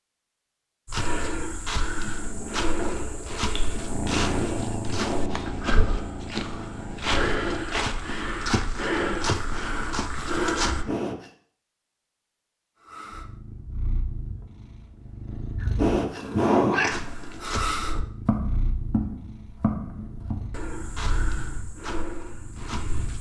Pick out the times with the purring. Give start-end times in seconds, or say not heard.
1.9-11.0, 12.8-23.1.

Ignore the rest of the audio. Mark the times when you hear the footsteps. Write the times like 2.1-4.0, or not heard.
0.8-10.8, 16.9-23.1.